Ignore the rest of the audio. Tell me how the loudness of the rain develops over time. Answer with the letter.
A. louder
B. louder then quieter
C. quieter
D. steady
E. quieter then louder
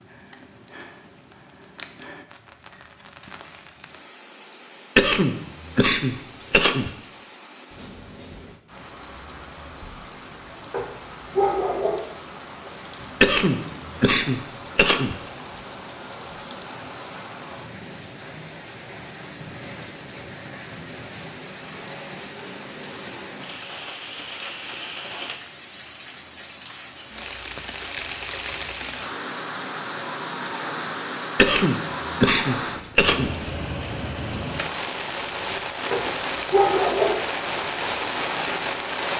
A.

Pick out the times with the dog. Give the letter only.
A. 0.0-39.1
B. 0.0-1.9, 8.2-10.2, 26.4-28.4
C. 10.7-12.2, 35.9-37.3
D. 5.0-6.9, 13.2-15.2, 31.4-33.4
C.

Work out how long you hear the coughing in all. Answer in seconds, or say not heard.
6 s.